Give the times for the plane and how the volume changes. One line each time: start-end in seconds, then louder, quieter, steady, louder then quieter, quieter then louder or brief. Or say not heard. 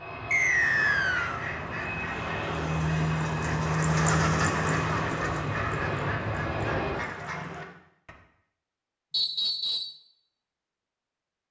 0.0-7.0 louder.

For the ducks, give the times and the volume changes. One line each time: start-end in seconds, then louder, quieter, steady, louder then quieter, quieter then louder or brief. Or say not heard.
0.6-8.2 louder then quieter.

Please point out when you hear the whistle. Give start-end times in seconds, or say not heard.
0.3-1.4, 9.1-9.9.